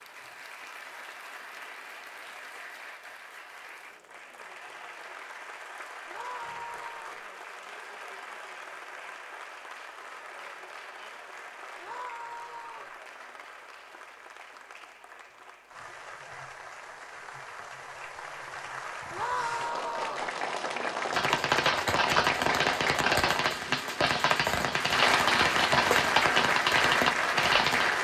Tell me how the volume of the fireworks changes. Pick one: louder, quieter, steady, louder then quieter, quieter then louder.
steady.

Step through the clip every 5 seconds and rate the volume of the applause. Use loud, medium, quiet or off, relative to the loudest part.
quiet, quiet, quiet, quiet, medium, loud.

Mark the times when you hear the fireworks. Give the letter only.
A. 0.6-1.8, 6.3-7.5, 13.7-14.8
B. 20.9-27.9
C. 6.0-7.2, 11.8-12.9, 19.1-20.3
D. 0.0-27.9
B.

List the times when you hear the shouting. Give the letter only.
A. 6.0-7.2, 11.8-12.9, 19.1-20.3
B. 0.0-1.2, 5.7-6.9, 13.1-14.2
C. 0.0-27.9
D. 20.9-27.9
A.